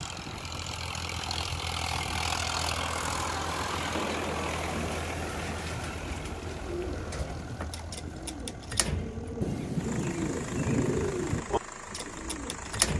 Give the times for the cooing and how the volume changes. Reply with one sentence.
The cooing can be heard from 4.7 to 12.9 s, getting louder.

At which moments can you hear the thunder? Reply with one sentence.
The thunder can be heard from 9.4 to 11.4 s.